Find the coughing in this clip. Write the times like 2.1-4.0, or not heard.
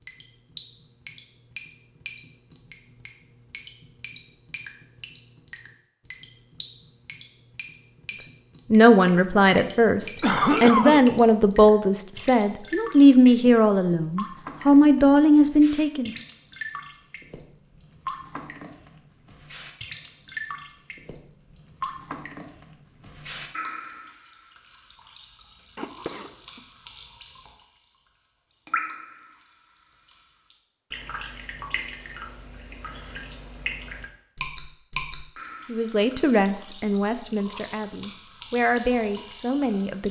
10.2-11.1, 25.8-26.6.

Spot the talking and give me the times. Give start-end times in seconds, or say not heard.
8.7-16.1, 35.7-40.0.